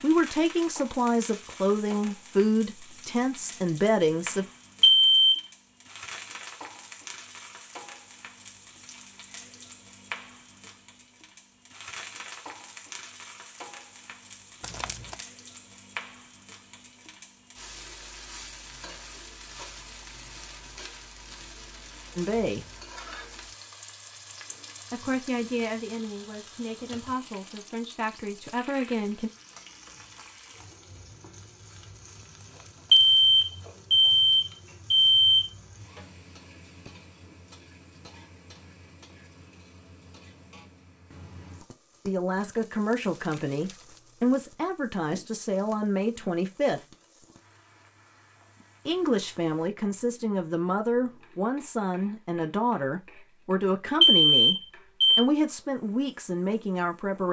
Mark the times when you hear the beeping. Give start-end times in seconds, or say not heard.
4.8-5.4, 32.9-35.5, 54.0-55.2.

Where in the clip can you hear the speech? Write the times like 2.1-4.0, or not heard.
0.0-4.5, 22.1-22.6, 24.9-29.3, 42.0-46.9, 48.9-57.2.